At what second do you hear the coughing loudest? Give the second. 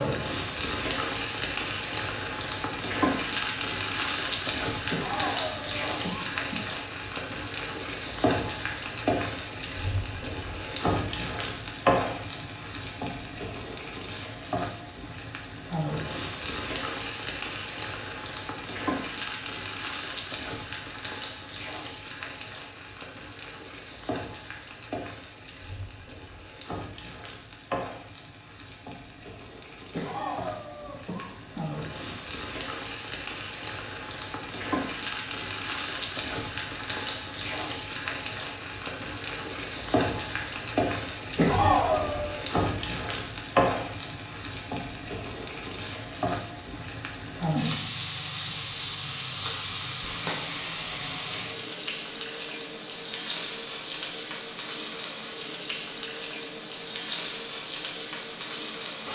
42 s.